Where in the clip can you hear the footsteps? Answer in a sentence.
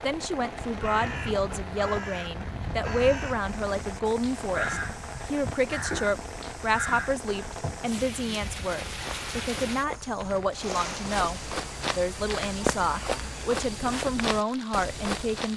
You can hear the footsteps from 3.4 to 15.5 s.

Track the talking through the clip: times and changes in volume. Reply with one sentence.
You can hear the talking from 0.0 to 15.5 s, at a steady volume.